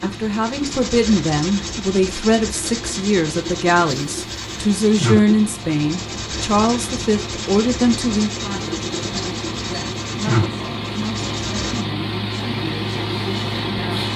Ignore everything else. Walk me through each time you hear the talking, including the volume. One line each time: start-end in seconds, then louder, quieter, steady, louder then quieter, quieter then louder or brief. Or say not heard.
0.0-14.1 quieter.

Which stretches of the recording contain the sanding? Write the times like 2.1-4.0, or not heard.
0.0-11.8.